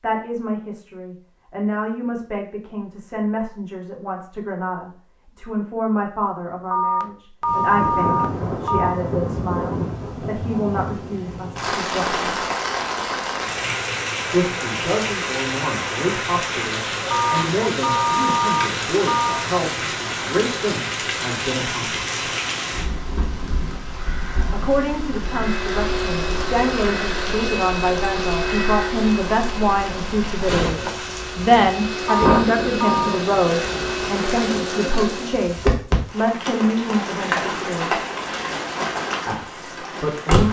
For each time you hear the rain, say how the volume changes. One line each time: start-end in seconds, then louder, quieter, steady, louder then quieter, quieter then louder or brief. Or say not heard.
7.4-40.4 steady.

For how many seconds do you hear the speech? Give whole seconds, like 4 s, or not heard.
35 s.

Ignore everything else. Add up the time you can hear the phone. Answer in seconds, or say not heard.
6 s.